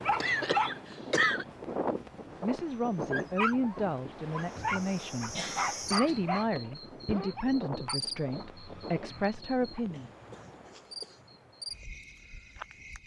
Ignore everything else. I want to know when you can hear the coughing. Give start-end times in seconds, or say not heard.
0.2-1.4, 4.4-6.2, 9.9-11.2.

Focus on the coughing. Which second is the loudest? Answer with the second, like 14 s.
1 s.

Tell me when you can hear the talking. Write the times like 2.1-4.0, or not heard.
2.4-10.1.